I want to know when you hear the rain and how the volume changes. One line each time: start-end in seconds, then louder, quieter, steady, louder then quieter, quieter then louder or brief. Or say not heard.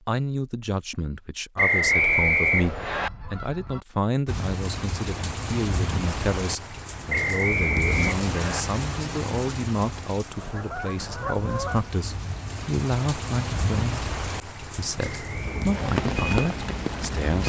4.2-17.4 quieter then louder.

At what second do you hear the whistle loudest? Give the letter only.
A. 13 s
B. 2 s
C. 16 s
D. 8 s
B.